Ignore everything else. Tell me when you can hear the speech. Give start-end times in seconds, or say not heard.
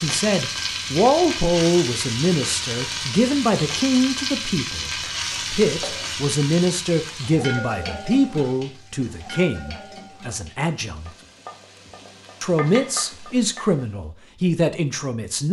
0.0-4.9, 5.5-11.1, 12.4-15.4.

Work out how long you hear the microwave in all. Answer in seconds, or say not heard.
not heard.